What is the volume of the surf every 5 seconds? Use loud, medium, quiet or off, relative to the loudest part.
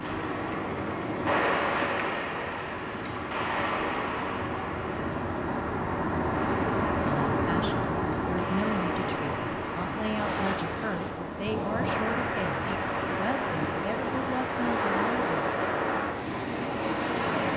loud, medium, loud, loud.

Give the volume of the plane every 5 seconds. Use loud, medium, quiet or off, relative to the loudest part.
medium, loud, medium, medium.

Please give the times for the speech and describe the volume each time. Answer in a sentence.
The speech can be heard from 7.0 to 15.6 s, at a steady volume.